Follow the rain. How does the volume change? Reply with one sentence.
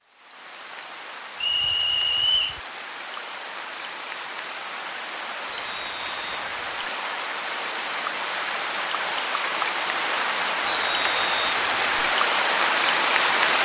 The volume of the rain goes up.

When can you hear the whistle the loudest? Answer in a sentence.
The volume of the whistle peaks at 2 seconds.